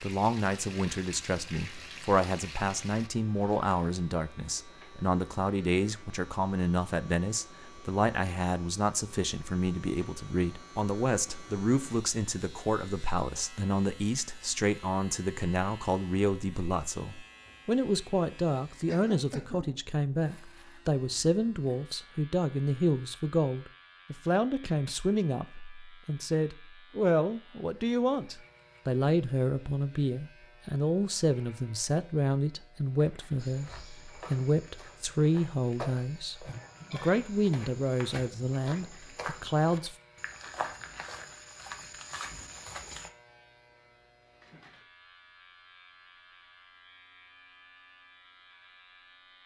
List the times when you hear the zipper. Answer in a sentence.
The zipper can't be heard in this clip.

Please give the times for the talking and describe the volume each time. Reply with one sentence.
You can hear the talking from 0.0 to 40.0 s, at a steady volume.